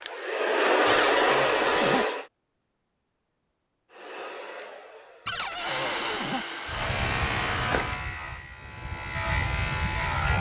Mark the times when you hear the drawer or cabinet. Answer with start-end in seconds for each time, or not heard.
0.8-2.0, 5.2-6.5.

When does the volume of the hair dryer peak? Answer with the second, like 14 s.
1 s.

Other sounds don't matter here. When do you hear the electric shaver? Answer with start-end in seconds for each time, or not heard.
6.7-10.3.